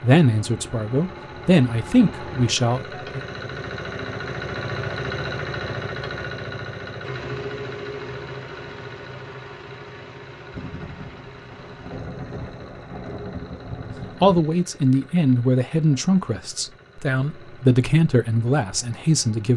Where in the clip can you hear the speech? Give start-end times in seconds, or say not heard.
0.0-3.2, 14.2-19.5.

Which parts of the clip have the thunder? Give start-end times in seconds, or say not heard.
10.5-14.4.